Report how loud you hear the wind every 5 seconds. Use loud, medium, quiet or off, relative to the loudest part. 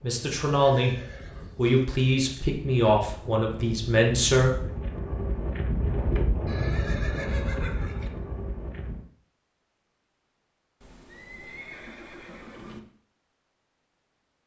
medium, loud, off.